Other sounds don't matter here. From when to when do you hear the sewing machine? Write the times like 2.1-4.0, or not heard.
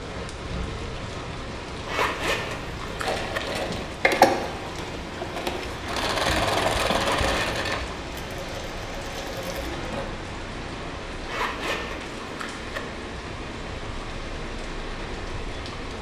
3.0-10.1.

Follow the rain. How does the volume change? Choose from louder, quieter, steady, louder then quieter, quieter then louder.
steady.